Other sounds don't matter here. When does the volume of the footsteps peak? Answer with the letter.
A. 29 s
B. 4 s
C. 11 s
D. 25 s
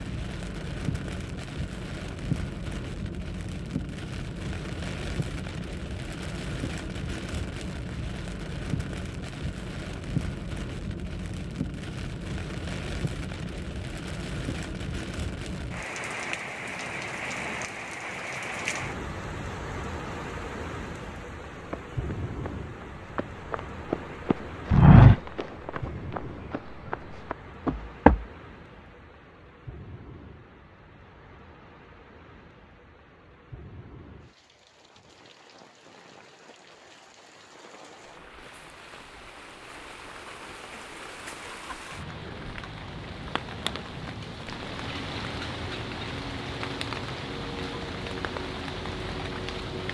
D.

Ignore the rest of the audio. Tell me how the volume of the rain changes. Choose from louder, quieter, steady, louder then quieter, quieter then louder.
quieter then louder.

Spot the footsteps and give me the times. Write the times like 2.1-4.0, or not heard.
21.7-28.2.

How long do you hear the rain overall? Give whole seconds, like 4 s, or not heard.
50 s.